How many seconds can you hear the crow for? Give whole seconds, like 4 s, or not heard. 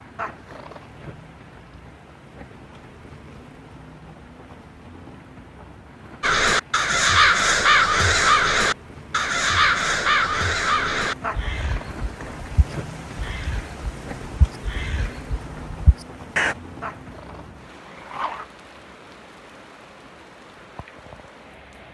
10 s.